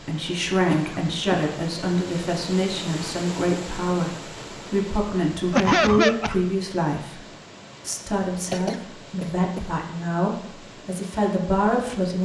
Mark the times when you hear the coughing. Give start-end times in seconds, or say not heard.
0.7-1.5, 5.5-6.3, 8.5-9.7.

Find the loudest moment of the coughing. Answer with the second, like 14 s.
6 s.